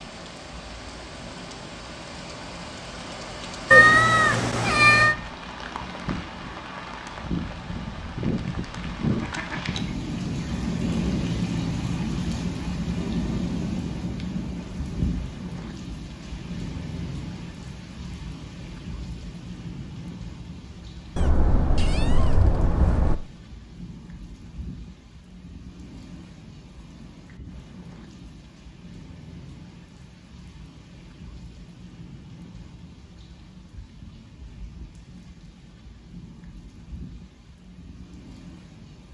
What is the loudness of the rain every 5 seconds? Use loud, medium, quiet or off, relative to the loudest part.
medium, loud, loud, medium, quiet, quiet, quiet, quiet.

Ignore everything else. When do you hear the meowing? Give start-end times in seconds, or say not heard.
3.7-5.2, 21.1-23.1.